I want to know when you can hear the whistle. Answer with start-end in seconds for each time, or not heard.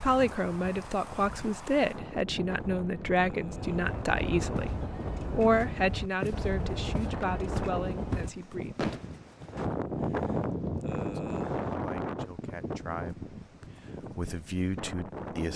not heard.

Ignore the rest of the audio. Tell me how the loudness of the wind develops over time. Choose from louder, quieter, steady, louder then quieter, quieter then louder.
louder then quieter.